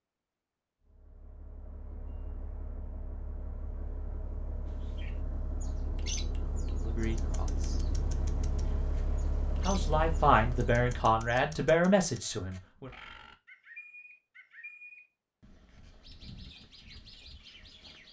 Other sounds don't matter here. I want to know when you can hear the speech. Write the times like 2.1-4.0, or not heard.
6.8-7.8, 9.6-12.9.